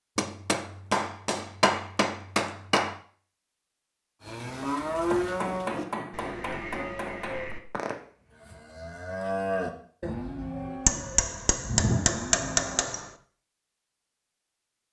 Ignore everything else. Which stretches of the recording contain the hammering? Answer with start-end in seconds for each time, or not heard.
0.1-3.0, 5.1-7.5, 10.8-13.1.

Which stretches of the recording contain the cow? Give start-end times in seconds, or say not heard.
4.2-12.9.